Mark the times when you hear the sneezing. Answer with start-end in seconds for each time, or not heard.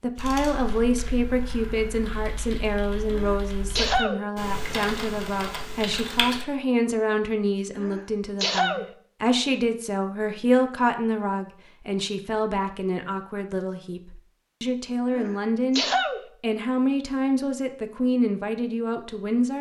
3.1-4.2, 7.8-8.8, 15.1-16.2.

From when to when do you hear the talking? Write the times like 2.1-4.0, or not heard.
0.0-19.5.